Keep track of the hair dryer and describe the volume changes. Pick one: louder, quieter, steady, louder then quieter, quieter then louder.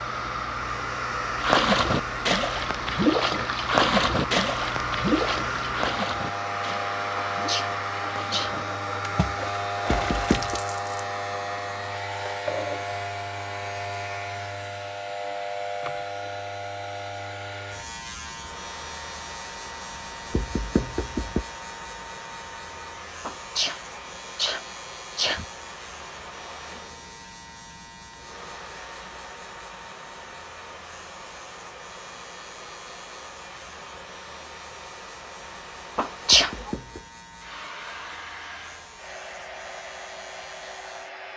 quieter.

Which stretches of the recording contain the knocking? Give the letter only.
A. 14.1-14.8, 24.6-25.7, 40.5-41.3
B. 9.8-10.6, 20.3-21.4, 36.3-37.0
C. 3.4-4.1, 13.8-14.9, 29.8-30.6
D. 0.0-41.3
B.